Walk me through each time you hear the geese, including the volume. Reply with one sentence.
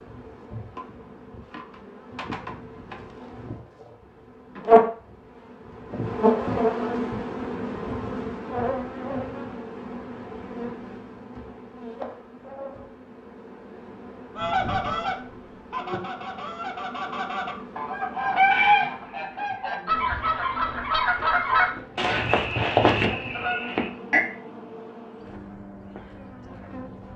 You can hear the geese from 14.3 to 24.2 s, getting louder.